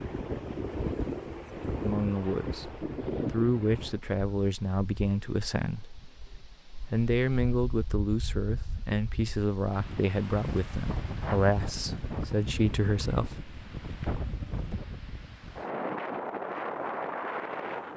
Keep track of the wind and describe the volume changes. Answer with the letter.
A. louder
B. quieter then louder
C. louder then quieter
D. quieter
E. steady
B.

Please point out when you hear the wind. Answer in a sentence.
The wind can be heard from 0.0 to 17.9 s.